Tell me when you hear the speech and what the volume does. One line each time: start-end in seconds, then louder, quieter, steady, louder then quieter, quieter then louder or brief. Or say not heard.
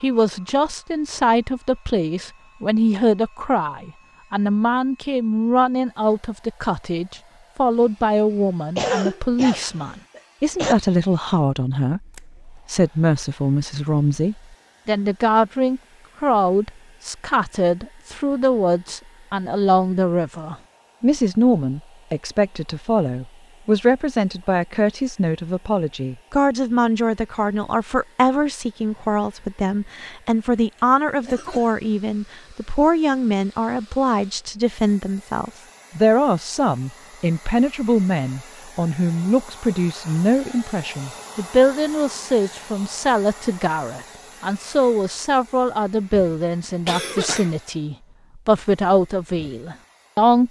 0.0-50.4 steady.